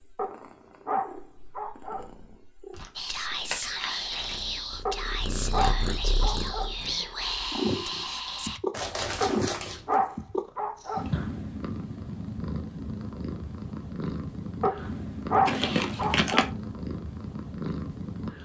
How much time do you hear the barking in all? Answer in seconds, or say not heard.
8 s.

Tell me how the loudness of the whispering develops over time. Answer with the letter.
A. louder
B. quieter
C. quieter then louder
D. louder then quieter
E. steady
E.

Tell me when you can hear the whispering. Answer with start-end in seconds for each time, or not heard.
3.0-8.6.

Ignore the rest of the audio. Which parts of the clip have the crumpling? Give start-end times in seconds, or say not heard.
2.7-4.5, 8.7-9.9, 15.4-16.5.